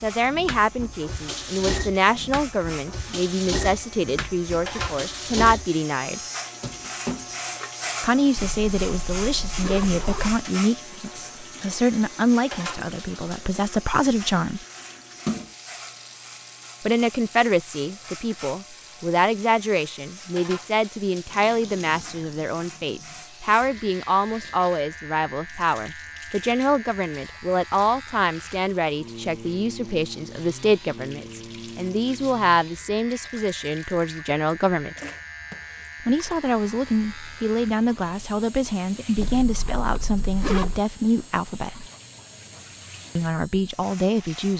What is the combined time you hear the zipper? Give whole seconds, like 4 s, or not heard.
4 s.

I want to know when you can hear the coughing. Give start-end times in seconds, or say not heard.
not heard.